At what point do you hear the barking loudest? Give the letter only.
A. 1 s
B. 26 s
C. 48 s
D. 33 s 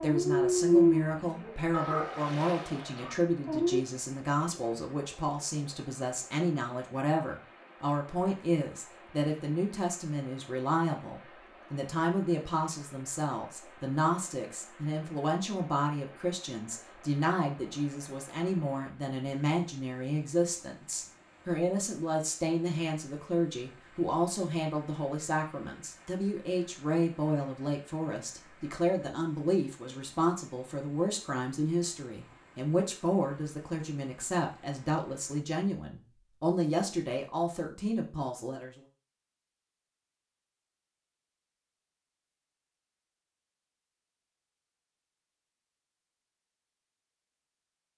A.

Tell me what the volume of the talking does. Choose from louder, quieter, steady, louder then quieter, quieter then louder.
steady.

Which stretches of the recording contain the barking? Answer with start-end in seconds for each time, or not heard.
0.0-3.9.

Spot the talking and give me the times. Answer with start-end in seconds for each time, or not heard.
0.0-38.8.